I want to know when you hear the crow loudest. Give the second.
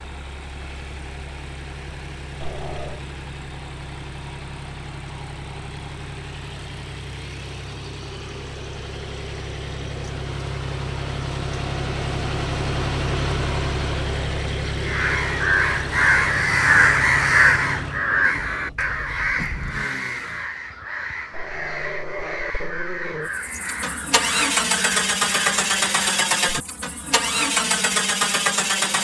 17 s.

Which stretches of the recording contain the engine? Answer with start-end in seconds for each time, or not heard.
0.0-20.5, 23.2-28.9.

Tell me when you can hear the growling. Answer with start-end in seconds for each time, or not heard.
2.4-3.0, 21.3-23.3.